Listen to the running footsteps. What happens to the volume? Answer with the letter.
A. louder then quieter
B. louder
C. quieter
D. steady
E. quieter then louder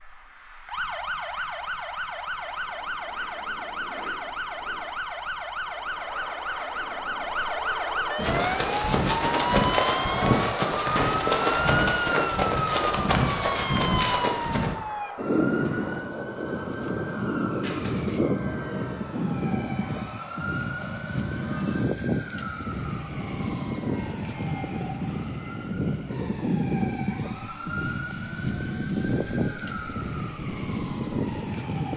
D.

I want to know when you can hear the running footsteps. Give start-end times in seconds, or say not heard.
8.2-14.8.